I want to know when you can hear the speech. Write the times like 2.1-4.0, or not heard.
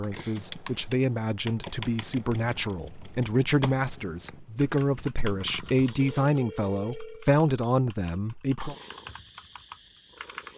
0.0-8.8.